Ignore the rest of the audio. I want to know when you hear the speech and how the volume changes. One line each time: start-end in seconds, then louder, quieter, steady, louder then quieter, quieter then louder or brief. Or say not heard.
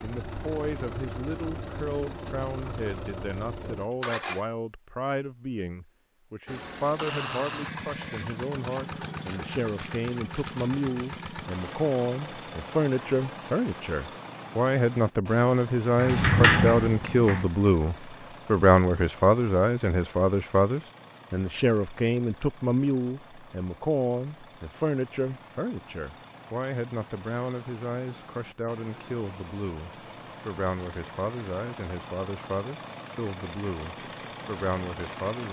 0.0-35.4 louder then quieter.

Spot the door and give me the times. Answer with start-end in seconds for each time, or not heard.
15.9-17.4.